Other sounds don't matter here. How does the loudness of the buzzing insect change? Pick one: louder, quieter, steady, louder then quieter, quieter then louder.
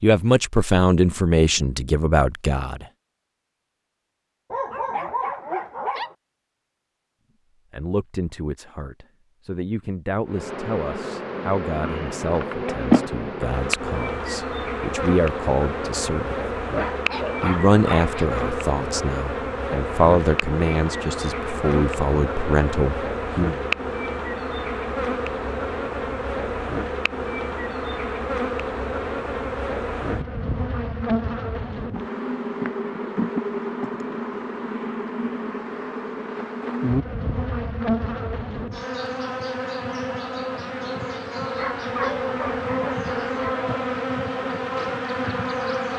steady.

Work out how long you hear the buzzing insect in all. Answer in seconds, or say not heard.
36 s.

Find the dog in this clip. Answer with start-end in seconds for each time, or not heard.
4.5-6.2, 16.7-18.2, 41.5-43.5.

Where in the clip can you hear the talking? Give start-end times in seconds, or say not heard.
0.0-2.9, 7.7-16.4, 17.4-23.6.